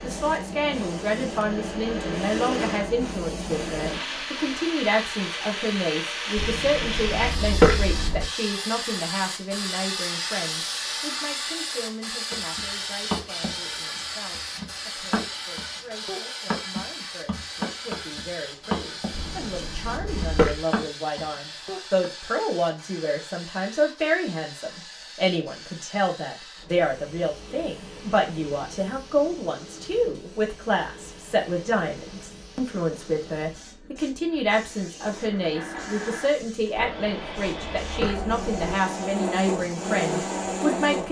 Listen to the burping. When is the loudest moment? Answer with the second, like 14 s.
8 s.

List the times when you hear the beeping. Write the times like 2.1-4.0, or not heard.
not heard.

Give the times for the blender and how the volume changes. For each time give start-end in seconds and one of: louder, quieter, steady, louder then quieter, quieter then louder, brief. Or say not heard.
0.0-5.0 louder then quieter
34.2-41.0 louder.